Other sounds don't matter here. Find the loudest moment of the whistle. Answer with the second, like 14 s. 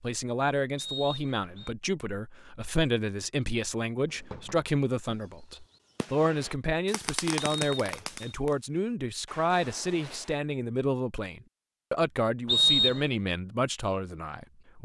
13 s.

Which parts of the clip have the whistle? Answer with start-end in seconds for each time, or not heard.
0.8-1.8, 7.5-8.3, 12.4-13.1.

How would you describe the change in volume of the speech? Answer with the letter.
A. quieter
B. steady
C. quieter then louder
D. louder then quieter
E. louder
B.